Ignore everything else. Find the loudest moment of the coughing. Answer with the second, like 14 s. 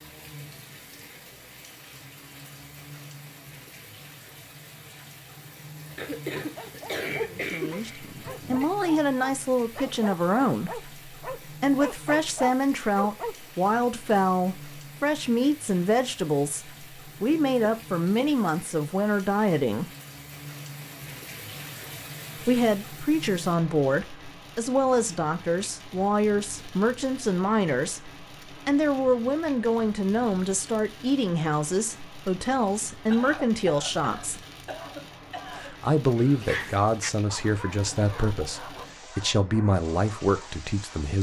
7 s.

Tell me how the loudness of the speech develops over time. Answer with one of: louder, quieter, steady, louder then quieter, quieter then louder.
steady.